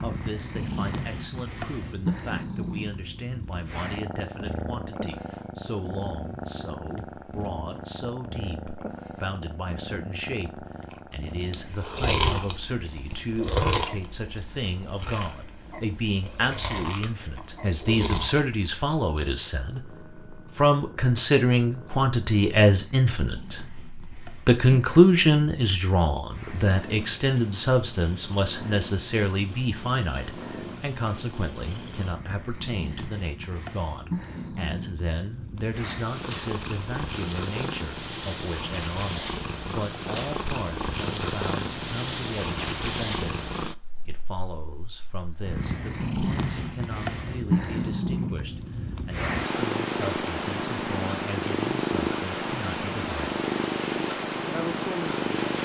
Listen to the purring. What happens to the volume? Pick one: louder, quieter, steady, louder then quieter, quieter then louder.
quieter then louder.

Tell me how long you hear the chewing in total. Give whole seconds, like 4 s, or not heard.
7 s.